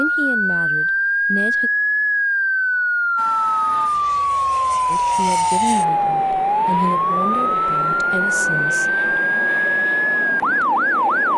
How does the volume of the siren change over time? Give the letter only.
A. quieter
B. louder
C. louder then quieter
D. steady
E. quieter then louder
D.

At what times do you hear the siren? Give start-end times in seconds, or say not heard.
0.0-11.3.